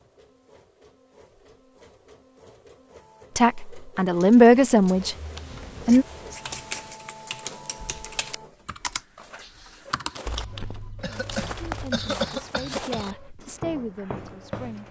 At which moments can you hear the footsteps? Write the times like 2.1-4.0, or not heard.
10.2-14.8.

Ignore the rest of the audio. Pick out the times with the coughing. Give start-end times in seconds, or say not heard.
11.0-13.2.